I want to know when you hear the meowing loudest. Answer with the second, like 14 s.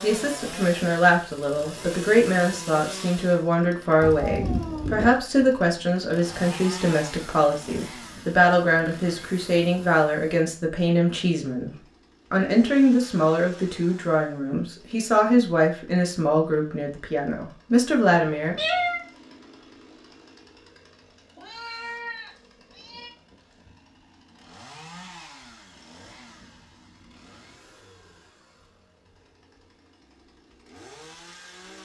19 s.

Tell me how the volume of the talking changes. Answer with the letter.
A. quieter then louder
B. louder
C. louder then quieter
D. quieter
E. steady
E.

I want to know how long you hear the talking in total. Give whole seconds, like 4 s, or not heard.
18 s.